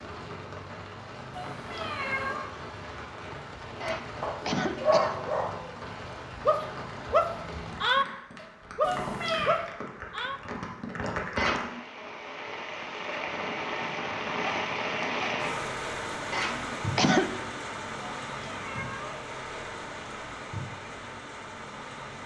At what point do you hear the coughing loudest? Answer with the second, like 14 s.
17 s.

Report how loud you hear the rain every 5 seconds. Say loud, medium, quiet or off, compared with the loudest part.
medium, medium, loud, loud, medium.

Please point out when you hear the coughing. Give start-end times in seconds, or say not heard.
3.8-5.3, 11.3-11.8, 16.3-17.4.